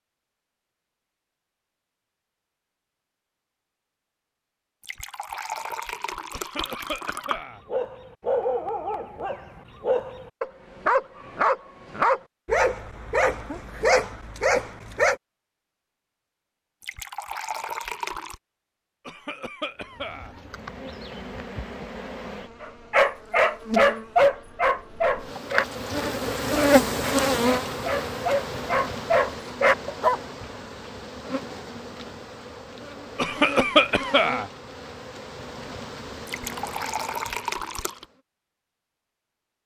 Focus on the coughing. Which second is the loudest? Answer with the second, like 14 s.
34 s.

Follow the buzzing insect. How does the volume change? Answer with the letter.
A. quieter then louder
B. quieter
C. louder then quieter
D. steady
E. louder
C.